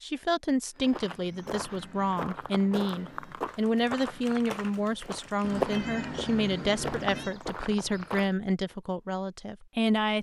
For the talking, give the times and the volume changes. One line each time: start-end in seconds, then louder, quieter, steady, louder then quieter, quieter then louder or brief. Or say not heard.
0.0-10.1 steady.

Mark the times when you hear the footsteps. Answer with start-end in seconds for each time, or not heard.
0.8-8.3.